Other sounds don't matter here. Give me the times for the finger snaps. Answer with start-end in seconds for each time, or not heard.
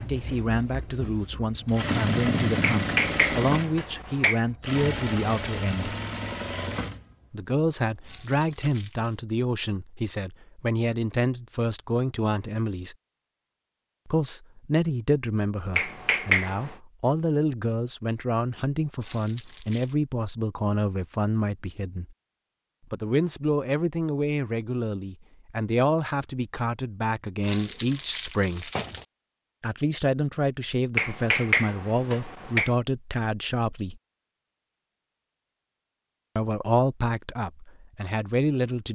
2.6-4.4, 15.8-16.7, 30.9-32.7.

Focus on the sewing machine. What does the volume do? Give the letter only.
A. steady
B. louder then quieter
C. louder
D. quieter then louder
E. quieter
B.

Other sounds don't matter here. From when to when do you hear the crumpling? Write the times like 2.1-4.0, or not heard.
8.0-9.2, 19.0-19.9, 27.4-29.1.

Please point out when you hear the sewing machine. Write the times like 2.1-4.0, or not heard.
0.0-8.7.